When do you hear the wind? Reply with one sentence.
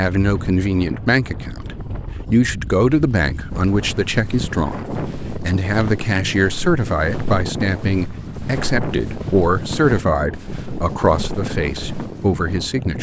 You can hear the wind from 0.0 to 12.9 s.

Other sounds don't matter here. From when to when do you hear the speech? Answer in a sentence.
You can hear the speech from 0.0 to 12.9 s.